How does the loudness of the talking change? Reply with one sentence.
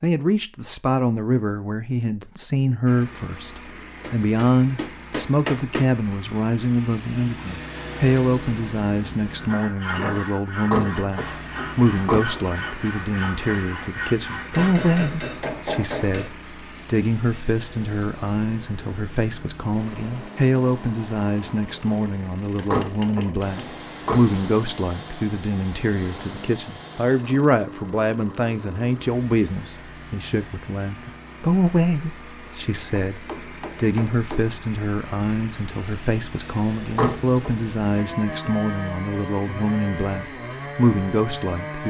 The volume of the talking stays about the same.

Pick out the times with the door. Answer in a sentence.
The door can be heard from 10.6 to 12.2 s, from 22.6 to 24.2 s and from 36.9 to 37.5 s.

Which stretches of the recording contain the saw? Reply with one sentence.
You can hear the saw from 9.3 to 15.1 s and from 37.9 to 41.8 s.